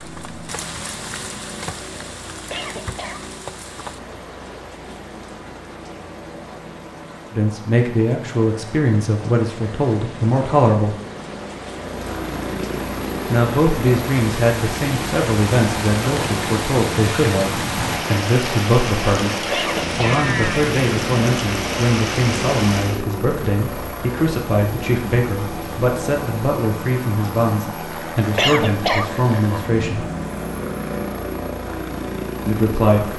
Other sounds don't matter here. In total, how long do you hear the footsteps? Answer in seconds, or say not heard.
not heard.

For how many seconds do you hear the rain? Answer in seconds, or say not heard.
23 s.